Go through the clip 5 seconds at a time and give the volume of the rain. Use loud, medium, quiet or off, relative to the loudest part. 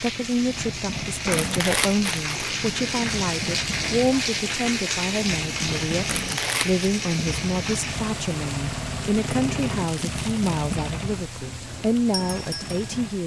loud, loud, medium.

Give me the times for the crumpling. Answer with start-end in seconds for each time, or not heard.
1.3-2.5, 6.0-6.8, 9.7-10.7.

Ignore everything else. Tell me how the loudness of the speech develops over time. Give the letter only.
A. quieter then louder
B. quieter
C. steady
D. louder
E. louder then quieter
C.